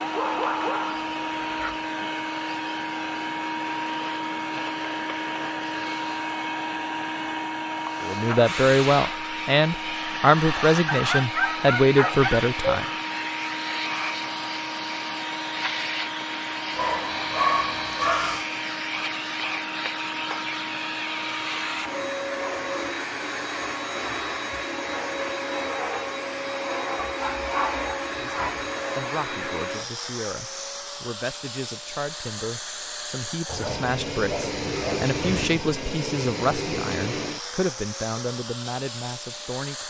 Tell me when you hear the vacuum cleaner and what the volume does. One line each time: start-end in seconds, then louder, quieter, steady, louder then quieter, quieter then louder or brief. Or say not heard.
0.0-39.8 steady.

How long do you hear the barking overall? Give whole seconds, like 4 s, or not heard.
9 s.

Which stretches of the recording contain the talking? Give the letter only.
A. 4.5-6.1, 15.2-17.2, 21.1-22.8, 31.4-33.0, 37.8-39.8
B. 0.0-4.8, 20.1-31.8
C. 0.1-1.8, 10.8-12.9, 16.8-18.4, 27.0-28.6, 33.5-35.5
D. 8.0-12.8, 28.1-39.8
D.